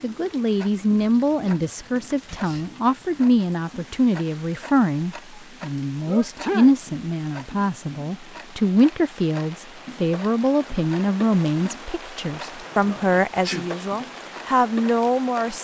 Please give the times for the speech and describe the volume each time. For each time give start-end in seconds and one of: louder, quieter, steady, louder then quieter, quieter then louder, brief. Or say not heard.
0.0-15.5 steady.